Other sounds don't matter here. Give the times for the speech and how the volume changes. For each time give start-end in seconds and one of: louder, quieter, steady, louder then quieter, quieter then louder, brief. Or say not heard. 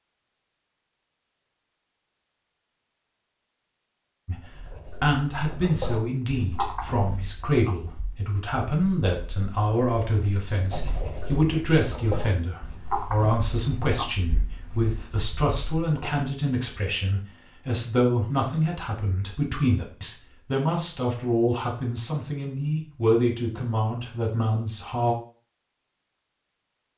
4.2-25.1 steady.